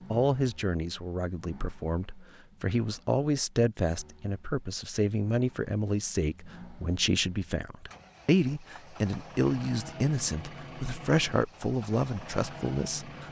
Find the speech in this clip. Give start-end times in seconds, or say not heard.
0.1-13.2.